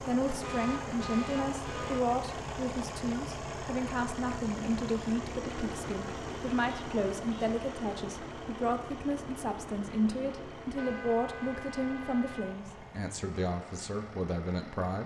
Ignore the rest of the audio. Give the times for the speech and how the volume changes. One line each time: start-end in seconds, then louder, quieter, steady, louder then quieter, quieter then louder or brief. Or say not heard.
0.0-15.0 steady.